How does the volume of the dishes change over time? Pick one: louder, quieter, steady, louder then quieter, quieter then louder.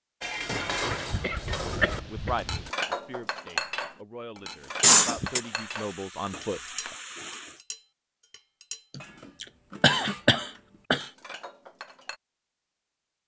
quieter.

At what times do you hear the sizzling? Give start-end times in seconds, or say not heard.
4.5-7.6.